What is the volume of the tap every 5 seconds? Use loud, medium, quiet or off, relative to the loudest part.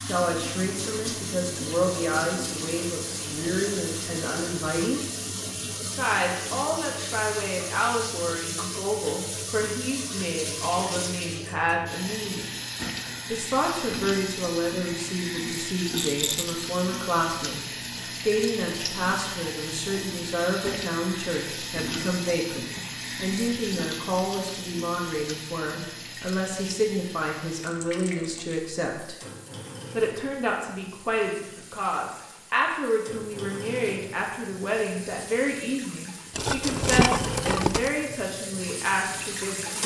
loud, loud, loud, loud, loud, medium, medium, loud.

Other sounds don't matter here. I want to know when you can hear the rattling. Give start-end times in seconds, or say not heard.
15.9-16.6, 36.4-37.9.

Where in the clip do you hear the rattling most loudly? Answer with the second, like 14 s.
37 s.